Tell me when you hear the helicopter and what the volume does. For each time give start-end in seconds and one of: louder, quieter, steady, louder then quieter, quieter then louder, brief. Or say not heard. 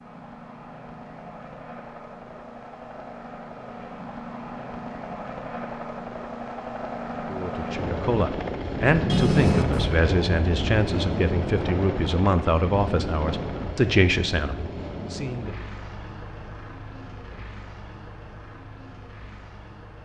0.0-19.9 louder then quieter.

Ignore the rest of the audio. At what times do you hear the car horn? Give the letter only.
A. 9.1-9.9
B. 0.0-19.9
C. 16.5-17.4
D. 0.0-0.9
A.